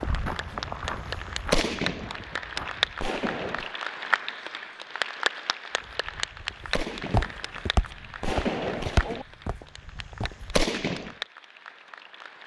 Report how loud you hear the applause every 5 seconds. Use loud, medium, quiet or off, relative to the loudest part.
loud, loud, medium.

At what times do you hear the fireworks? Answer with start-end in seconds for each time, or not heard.
0.0-3.8, 6.0-11.1.